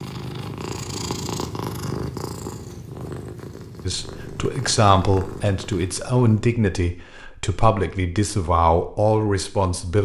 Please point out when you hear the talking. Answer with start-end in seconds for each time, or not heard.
3.9-9.9.